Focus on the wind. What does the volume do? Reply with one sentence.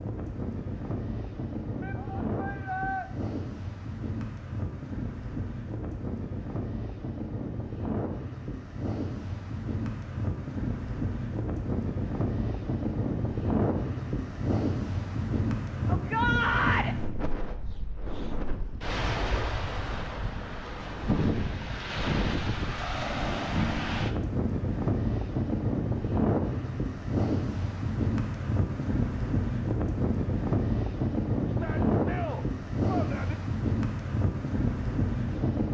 The loudness of the wind goes up.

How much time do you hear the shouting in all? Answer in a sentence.
You can hear the shouting for 4 seconds altogether.